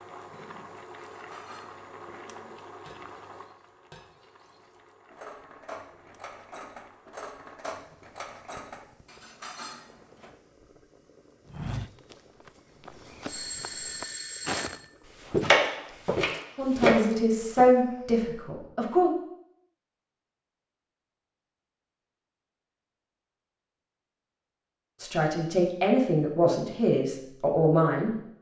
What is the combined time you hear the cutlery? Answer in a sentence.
The cutlery can be heard for 10 seconds in total.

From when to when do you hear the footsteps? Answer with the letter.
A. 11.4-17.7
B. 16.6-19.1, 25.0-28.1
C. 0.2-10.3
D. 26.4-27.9
A.